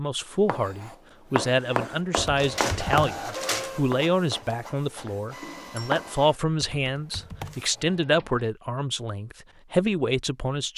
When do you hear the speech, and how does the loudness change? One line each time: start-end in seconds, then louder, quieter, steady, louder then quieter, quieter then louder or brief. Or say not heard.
0.0-10.7 steady.